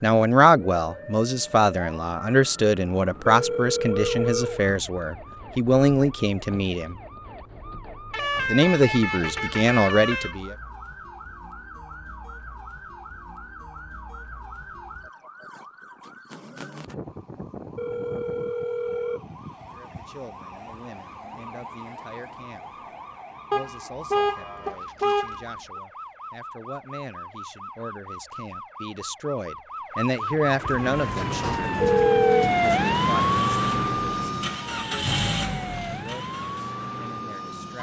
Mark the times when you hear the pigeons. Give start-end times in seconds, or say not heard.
not heard.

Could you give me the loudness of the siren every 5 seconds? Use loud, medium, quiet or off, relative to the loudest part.
quiet, quiet, quiet, quiet, quiet, quiet, loud, medium.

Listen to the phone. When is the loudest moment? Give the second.
32 s.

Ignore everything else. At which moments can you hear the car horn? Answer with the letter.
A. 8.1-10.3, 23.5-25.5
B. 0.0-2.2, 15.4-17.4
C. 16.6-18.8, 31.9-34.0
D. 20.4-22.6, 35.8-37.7
A.